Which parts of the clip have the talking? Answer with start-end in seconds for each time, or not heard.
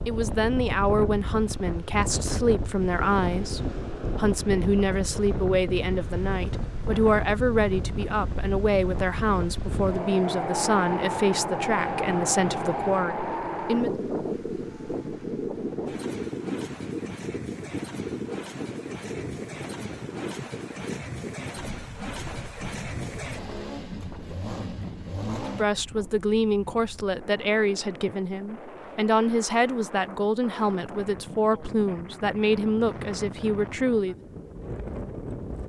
0.1-13.9, 25.4-34.1.